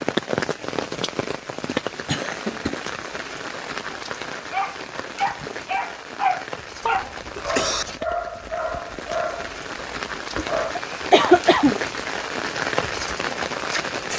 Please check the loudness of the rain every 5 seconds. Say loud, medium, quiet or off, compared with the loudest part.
loud, medium, loud.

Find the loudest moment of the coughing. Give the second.
11 s.